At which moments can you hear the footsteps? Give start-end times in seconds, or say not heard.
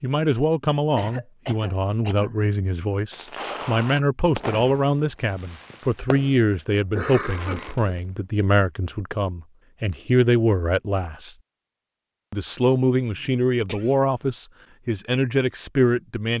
not heard.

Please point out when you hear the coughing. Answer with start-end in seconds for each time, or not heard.
0.9-2.4, 7.0-8.0, 13.1-14.1.